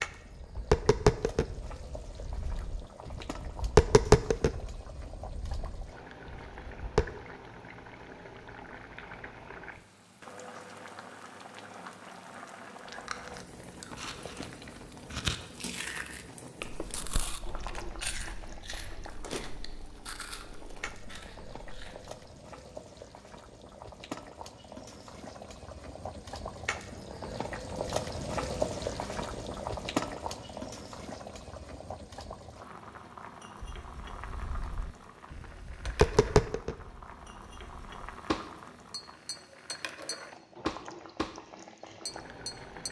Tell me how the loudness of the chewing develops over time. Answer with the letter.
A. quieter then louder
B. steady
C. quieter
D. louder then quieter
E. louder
D.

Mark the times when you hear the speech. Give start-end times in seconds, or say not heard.
not heard.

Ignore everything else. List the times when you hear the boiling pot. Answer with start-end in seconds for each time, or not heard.
0.0-42.8.